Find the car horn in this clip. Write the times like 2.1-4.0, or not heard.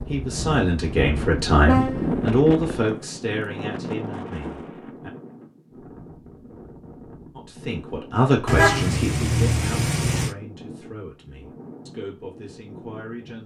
1.6-2.8, 8.4-10.3.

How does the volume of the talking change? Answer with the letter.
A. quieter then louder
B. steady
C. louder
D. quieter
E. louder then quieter
D.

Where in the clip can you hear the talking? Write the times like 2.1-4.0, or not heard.
0.1-5.1, 7.3-13.4.